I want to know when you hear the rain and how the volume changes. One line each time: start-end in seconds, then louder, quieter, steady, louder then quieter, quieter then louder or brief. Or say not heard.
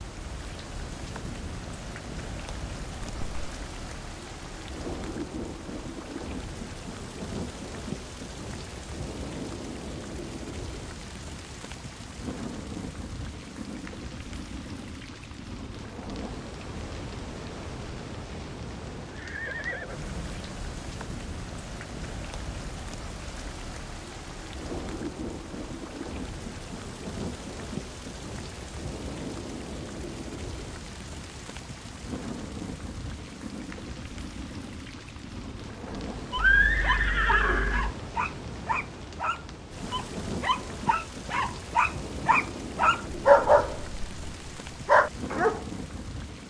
0.0-46.4 steady.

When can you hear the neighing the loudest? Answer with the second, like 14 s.
37 s.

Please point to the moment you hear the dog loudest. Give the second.
43 s.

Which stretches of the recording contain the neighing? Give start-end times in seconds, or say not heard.
3.0-3.5, 18.9-20.6, 36.4-38.0.